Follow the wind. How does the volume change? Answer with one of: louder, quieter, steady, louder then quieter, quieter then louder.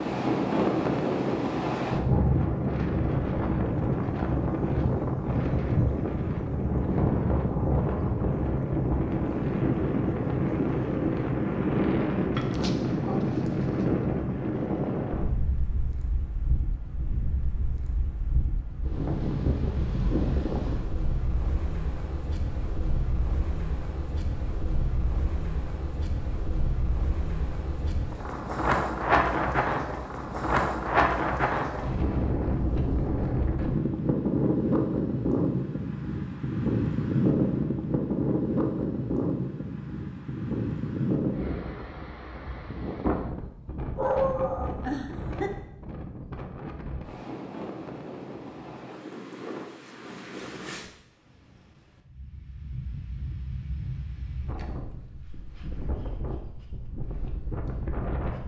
quieter.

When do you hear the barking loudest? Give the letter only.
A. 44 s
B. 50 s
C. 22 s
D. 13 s
A.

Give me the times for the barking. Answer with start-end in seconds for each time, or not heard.
12.3-13.7, 44.0-45.5.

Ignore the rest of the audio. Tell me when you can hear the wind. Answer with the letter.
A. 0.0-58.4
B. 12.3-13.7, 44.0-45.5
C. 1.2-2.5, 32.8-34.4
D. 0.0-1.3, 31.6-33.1
A.